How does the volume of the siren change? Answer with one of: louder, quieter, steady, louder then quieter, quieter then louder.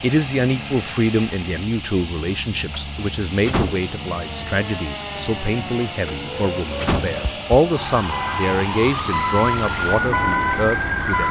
louder.